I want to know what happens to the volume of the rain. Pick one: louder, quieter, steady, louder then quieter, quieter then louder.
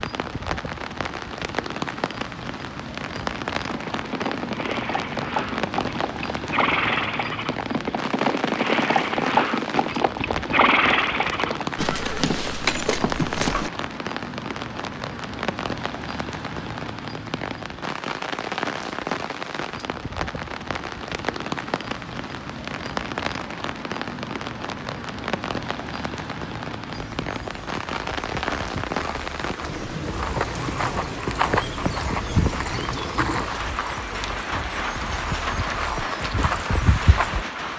steady.